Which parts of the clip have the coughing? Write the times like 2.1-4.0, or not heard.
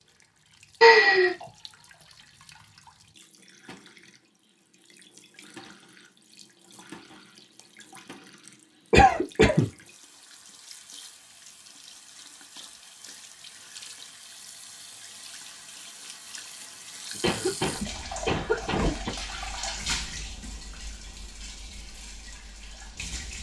0.8-1.4, 8.9-9.7, 17.1-19.1.